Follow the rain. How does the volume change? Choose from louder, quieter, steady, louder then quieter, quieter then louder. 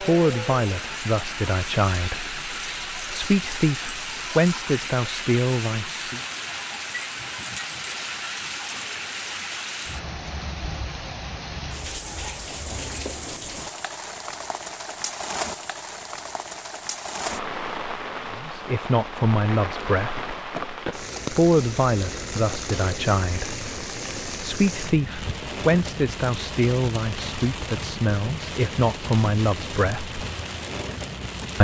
steady.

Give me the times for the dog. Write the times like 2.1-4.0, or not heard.
not heard.